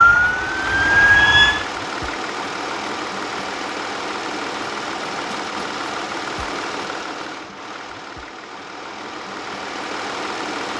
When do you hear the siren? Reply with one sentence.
The siren can be heard from 0.0 to 1.6 s.